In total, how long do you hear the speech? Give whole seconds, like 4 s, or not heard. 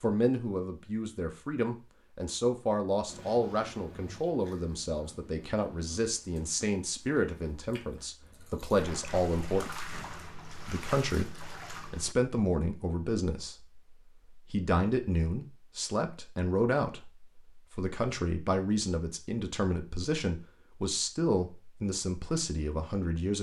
22 s.